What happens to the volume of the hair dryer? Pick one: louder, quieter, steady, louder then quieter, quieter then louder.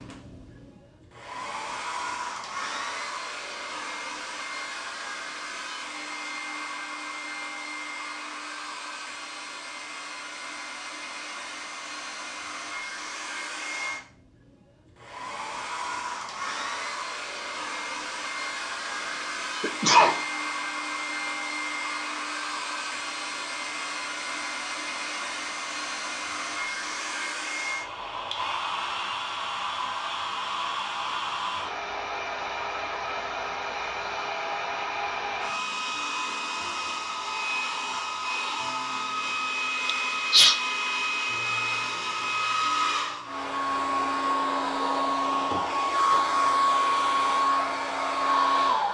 louder.